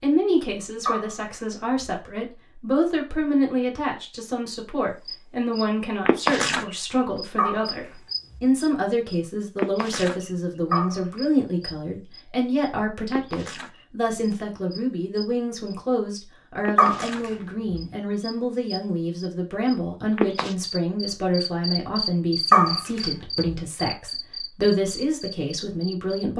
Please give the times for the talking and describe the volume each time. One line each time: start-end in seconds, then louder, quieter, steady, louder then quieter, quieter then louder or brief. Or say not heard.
0.0-26.3 steady.